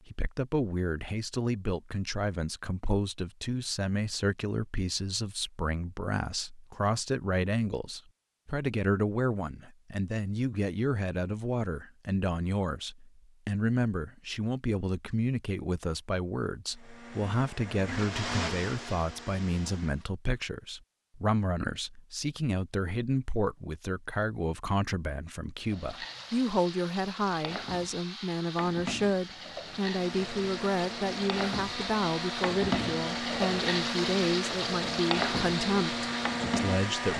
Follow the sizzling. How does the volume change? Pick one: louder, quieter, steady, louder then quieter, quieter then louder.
louder.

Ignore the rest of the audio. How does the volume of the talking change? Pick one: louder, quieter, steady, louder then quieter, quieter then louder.
steady.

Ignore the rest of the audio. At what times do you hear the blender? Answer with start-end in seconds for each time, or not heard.
16.7-20.1, 29.9-37.1.